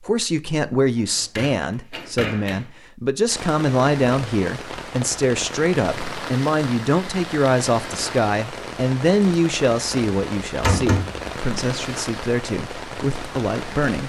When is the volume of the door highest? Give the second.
11 s.